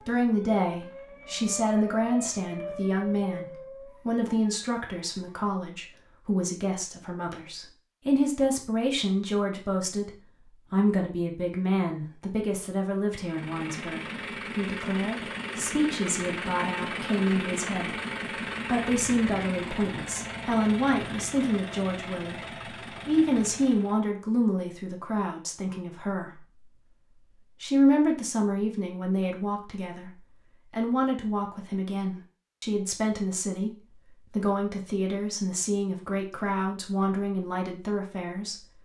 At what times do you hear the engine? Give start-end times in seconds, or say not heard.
13.1-24.0.